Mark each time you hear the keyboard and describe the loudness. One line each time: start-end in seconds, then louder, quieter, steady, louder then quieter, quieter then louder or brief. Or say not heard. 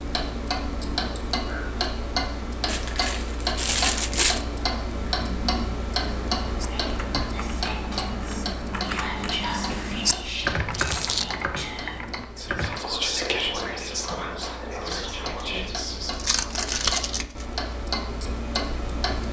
6.0-12.8 louder then quieter.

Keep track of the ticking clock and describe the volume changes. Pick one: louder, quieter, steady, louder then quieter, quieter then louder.
quieter then louder.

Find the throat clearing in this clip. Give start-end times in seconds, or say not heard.
not heard.